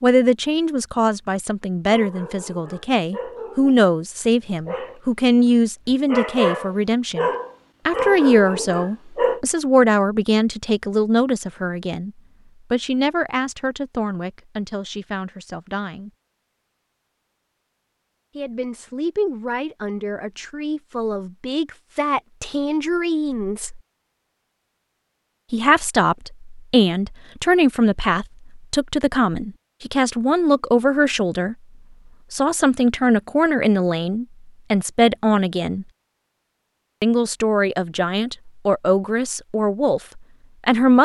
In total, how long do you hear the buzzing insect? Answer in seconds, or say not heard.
not heard.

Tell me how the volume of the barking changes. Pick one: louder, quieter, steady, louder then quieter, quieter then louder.
louder.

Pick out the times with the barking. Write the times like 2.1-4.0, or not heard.
1.9-5.0, 5.9-9.4.